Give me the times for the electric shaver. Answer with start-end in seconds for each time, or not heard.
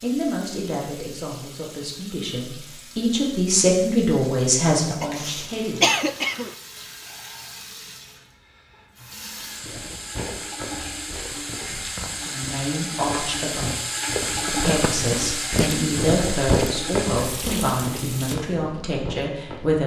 not heard.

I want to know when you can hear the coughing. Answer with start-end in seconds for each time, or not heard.
5.0-6.5.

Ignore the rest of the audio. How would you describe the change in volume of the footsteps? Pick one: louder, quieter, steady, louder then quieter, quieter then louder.
louder then quieter.